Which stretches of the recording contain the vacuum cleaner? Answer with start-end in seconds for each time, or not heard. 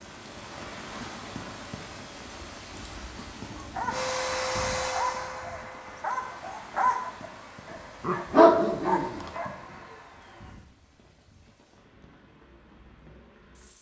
3.9-10.6.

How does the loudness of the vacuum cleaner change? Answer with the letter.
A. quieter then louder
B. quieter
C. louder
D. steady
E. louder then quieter
B.